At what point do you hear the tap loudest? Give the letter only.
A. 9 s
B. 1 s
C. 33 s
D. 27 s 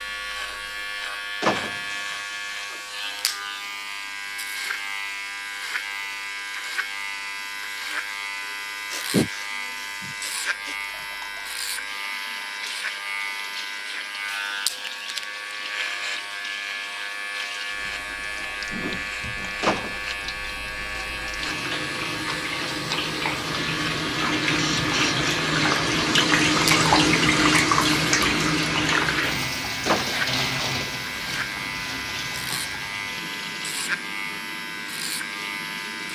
D.